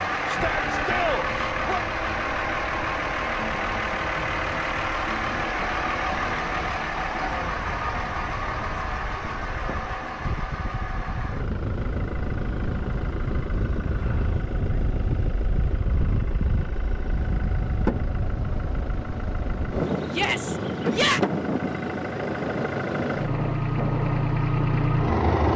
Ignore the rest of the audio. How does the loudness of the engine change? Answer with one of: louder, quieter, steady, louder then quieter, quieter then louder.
quieter then louder.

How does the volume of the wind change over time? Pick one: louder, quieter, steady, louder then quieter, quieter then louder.
louder.